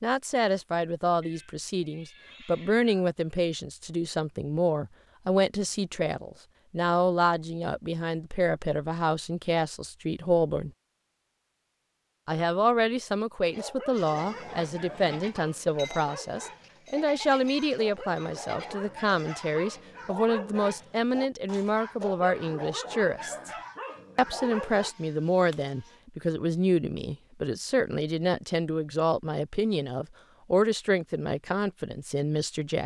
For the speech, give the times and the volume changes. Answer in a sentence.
The speech can be heard from 0.0 to 10.7 s, at a steady volume; from 12.2 to 23.5 s, at a steady volume; and from 24.1 to 32.8 s, at a steady volume.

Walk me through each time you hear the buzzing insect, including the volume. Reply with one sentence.
You can't hear the buzzing insect here.